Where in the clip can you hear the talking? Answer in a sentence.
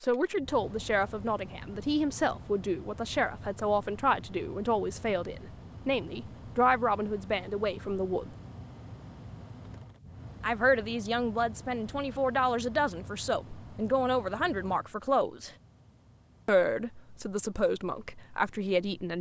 You can hear the talking from 0.0 to 8.3 s, from 10.4 to 15.5 s and from 16.4 to 19.1 s.